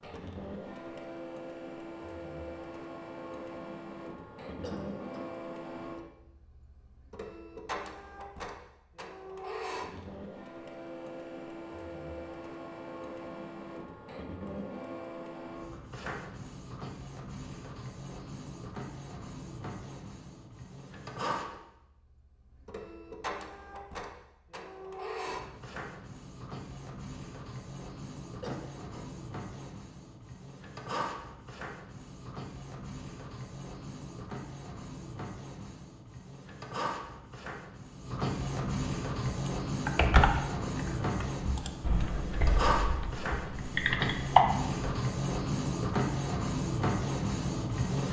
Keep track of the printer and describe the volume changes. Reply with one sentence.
The volume of the printer goes up.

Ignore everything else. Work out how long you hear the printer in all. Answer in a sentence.
You can hear the printer for 48 seconds altogether.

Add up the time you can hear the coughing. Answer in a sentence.
You can hear the coughing for 2 seconds altogether.